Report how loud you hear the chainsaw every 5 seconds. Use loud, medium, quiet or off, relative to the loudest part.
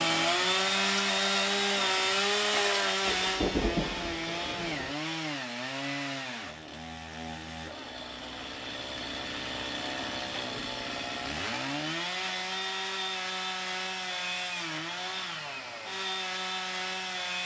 loud, medium, medium, medium.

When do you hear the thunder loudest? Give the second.
4 s.